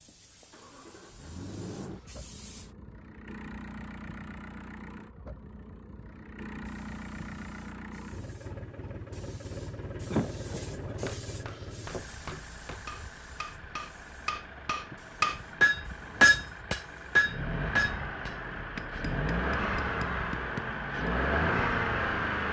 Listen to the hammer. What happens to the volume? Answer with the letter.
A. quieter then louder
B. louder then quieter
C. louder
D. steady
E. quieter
B.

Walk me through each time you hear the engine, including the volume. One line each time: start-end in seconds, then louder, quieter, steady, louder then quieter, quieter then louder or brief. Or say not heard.
0.0-22.4 louder.